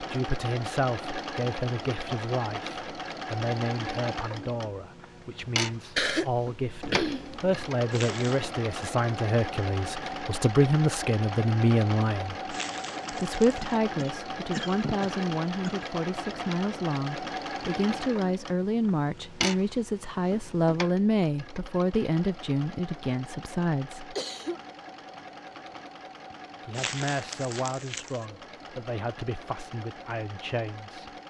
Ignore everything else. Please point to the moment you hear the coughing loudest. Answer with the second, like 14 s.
6 s.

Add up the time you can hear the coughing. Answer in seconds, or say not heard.
4 s.